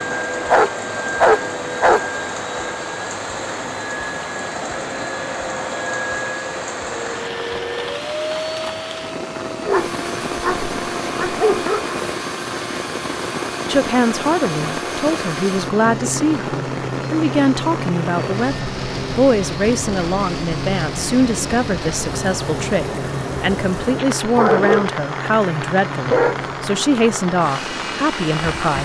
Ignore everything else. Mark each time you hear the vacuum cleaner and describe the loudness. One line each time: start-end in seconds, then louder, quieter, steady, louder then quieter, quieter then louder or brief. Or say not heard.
0.0-28.8 steady.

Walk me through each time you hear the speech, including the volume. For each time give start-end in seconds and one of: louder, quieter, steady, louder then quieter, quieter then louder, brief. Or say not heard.
13.7-28.8 steady.